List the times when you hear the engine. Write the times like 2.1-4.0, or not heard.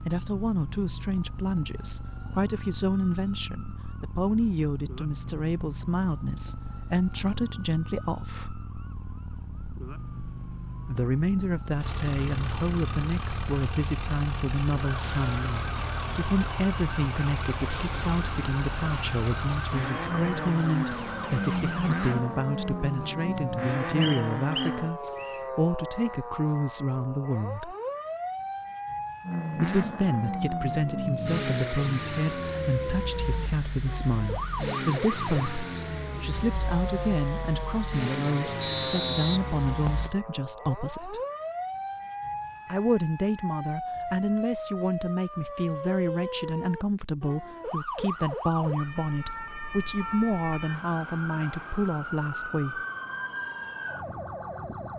11.8-24.9, 29.2-40.1.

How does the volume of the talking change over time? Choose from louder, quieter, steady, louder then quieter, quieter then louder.
steady.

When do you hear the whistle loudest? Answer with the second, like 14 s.
39 s.